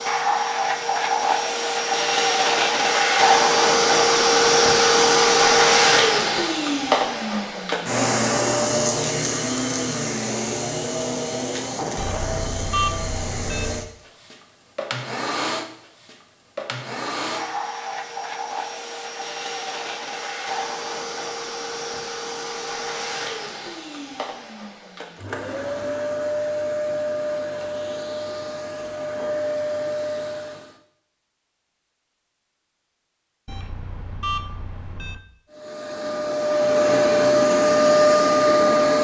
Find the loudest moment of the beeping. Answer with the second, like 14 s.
13 s.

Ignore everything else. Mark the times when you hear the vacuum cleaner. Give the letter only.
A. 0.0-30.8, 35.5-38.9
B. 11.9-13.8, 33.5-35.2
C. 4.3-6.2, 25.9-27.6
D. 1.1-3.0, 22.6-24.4
A.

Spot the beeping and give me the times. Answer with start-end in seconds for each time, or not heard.
11.9-13.8, 33.5-35.2.